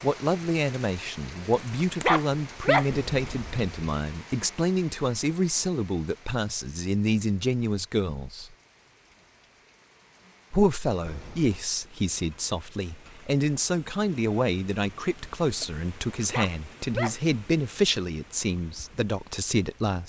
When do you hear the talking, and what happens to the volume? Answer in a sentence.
You can hear the talking from 0.0 to 8.5 s, at a steady volume; and from 10.5 to 20.0 s, at a steady volume.